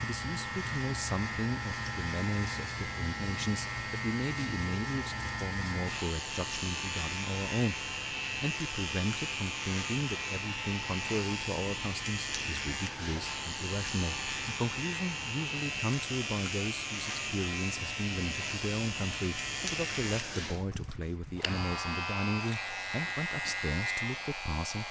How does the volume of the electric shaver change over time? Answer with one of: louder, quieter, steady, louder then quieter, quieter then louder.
steady.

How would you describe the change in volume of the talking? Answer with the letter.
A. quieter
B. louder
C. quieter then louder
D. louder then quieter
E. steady
E.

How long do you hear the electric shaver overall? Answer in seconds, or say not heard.
25 s.